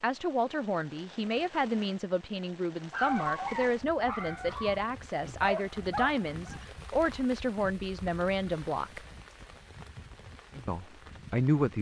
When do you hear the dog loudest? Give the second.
3 s.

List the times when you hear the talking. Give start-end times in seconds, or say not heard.
0.0-9.0, 10.7-11.7.